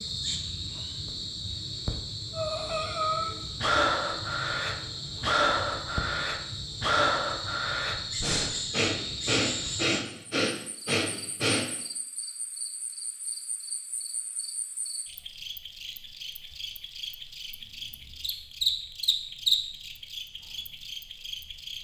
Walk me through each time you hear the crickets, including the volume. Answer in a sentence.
You can hear the crickets from 0.0 to 21.7 s, getting quieter then louder.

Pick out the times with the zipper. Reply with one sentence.
The zipper can't be heard in this clip.